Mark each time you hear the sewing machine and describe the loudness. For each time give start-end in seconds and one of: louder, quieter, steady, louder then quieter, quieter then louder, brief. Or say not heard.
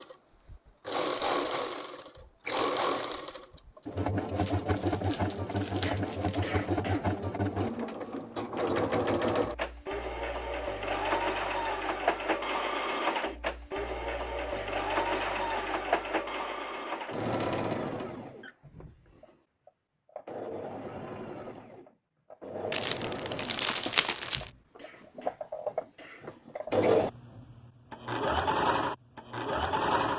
0.0-30.1 quieter then louder.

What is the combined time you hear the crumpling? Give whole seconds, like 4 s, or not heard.
4 s.